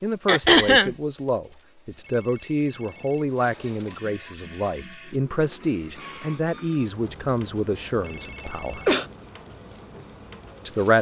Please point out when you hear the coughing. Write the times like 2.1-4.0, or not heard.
0.2-0.9, 8.3-9.1.